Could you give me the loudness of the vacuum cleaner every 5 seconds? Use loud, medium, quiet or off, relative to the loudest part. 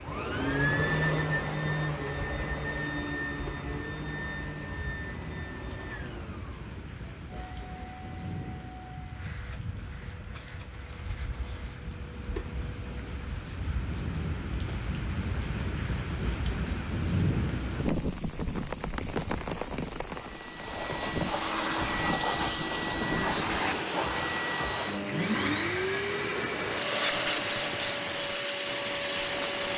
loud, quiet, quiet, off, loud, loud.